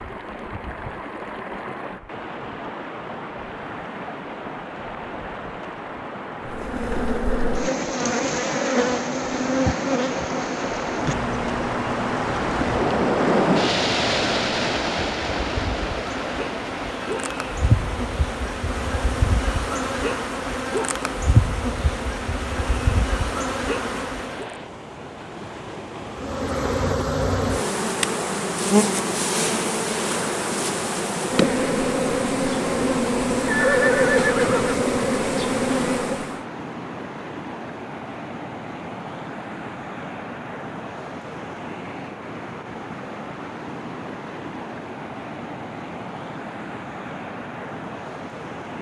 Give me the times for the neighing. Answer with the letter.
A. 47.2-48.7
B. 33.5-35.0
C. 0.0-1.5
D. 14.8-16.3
B.